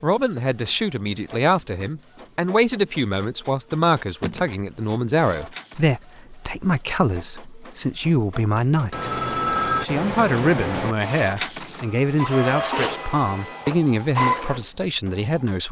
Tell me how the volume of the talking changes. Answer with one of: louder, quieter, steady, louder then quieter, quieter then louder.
steady.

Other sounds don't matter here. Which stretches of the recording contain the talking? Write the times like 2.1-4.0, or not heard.
0.0-15.6.